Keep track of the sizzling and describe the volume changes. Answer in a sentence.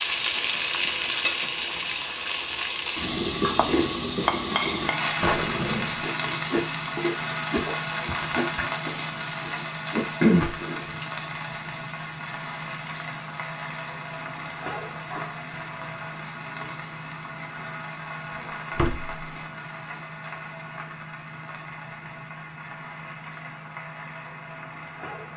The loudness of the sizzling goes down.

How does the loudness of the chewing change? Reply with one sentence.
The loudness of the chewing goes down, then up.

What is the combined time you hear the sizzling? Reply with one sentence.
You can hear the sizzling for 25 seconds altogether.